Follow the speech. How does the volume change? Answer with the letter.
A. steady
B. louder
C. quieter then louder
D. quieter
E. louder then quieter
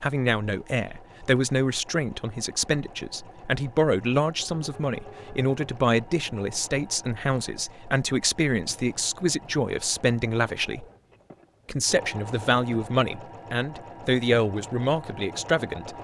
A.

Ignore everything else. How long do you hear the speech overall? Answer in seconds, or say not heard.
15 s.